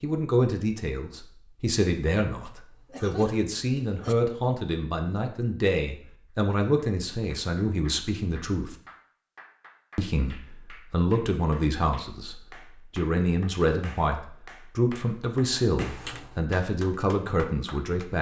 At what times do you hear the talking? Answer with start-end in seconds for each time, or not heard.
0.0-8.8, 9.9-18.1.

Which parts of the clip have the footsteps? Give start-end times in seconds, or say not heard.
not heard.